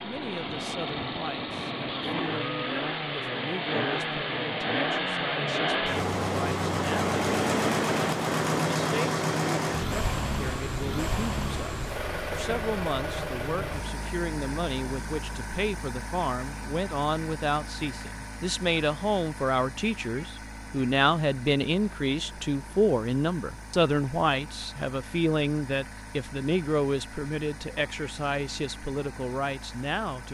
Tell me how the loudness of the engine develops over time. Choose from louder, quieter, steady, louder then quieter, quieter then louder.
quieter.